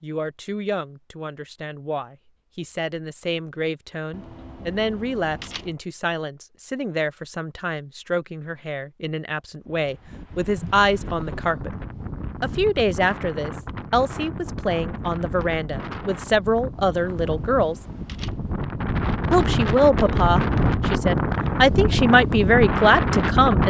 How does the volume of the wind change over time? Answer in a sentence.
The volume of the wind goes up.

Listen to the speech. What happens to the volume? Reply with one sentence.
The volume of the speech goes up.